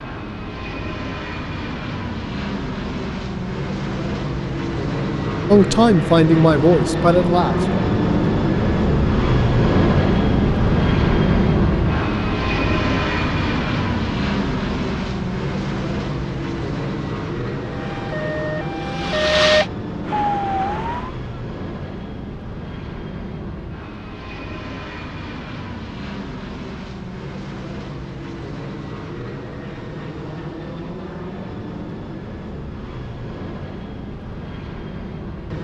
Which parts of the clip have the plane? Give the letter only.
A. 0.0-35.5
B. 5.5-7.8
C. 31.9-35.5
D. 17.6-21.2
A.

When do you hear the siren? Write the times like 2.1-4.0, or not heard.
17.6-21.2.